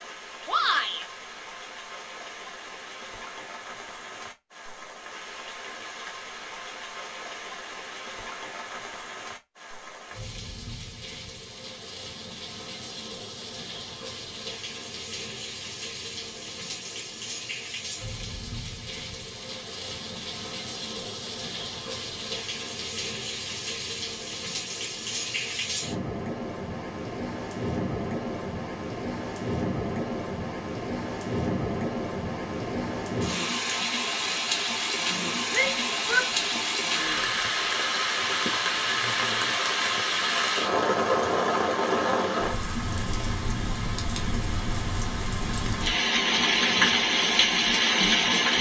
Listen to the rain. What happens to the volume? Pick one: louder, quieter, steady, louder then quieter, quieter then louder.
louder.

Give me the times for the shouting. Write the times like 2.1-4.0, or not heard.
0.5-1.1, 35.5-36.6.